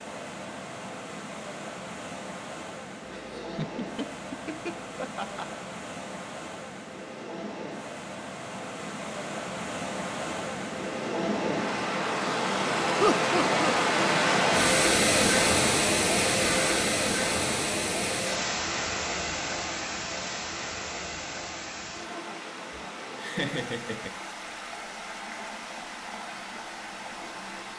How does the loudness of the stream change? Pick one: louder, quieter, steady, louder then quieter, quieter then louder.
louder then quieter.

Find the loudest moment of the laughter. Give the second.
13 s.